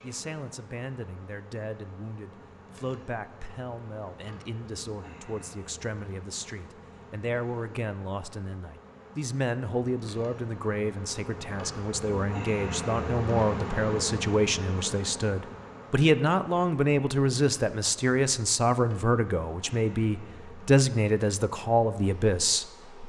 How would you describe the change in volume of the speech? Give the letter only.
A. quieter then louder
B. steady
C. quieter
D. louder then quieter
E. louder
E.